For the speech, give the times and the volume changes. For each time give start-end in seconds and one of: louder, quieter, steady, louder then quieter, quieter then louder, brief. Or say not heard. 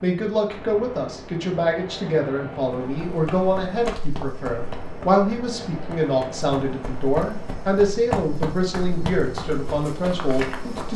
0.0-10.9 steady.